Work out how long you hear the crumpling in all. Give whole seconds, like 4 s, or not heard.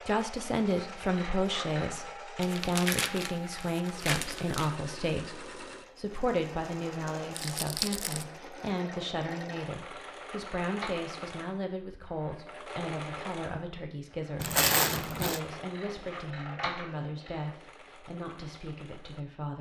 4 s.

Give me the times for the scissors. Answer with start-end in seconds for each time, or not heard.
1.1-2.0, 9.8-11.2, 15.7-17.5.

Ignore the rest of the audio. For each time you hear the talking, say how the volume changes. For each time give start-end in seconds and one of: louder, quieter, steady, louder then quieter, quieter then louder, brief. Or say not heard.
0.1-19.5 quieter.